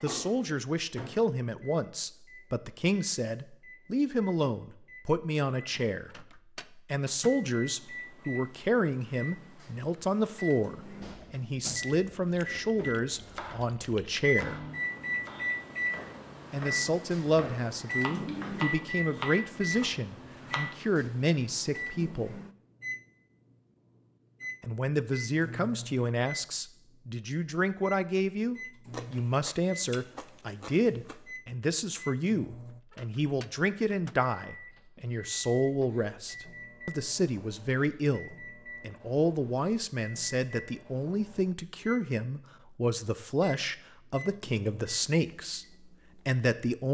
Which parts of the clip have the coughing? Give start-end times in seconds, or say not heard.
18.2-18.7.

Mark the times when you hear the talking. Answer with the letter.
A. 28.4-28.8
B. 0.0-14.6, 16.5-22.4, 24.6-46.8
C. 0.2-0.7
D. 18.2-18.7
B.